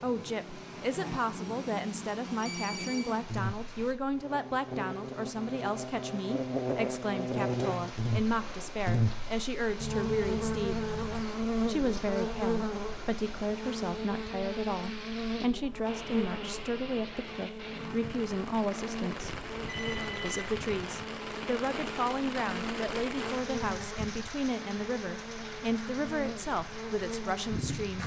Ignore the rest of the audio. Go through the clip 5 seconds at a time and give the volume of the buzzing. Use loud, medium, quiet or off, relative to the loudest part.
medium, loud, loud, medium, medium, medium.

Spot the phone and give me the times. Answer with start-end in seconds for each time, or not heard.
2.2-3.0, 9.8-11.2, 19.2-20.9.